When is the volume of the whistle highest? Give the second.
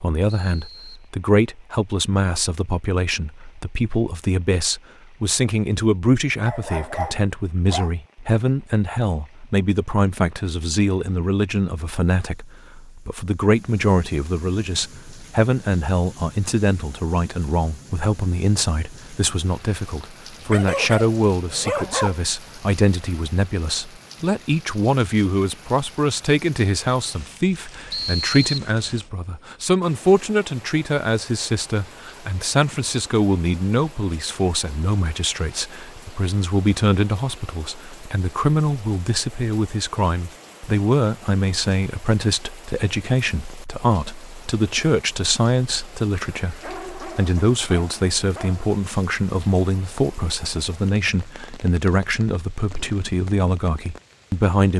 28 s.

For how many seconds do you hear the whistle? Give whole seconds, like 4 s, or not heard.
2 s.